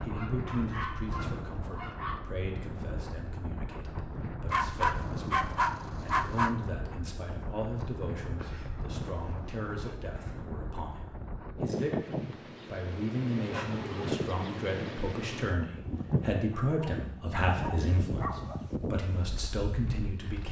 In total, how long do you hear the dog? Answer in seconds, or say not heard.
9 s.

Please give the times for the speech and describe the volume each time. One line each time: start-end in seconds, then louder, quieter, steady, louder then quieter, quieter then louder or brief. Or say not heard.
0.0-18.3 louder
18.9-20.4 brief.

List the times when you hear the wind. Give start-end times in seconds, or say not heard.
0.0-20.4.